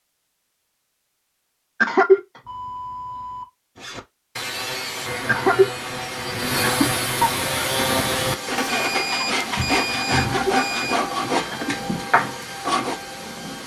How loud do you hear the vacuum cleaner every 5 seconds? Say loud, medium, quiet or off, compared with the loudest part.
off, loud, loud.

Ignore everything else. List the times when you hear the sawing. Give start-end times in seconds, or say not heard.
3.8-13.0.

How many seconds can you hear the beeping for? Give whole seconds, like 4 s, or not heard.
3 s.